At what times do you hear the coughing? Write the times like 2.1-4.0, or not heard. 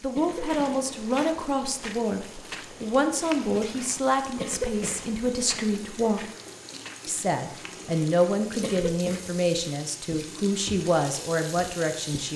0.1-0.8, 4.4-5.0, 8.6-9.3.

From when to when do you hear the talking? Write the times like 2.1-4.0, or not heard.
0.0-6.2, 7.0-12.3.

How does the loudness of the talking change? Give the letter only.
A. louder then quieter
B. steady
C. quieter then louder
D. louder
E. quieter
B.